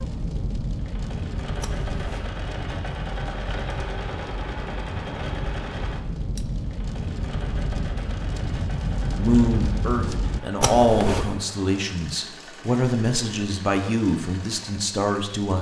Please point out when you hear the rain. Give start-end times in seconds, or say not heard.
0.0-10.4.